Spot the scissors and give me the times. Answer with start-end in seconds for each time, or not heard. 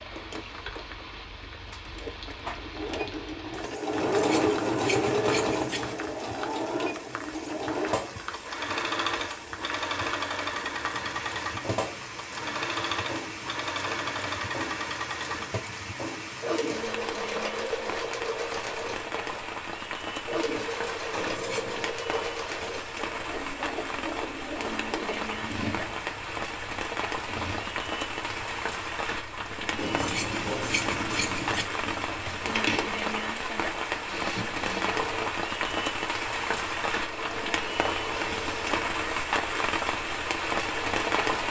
3.9-6.0, 21.1-22.0, 29.8-31.6.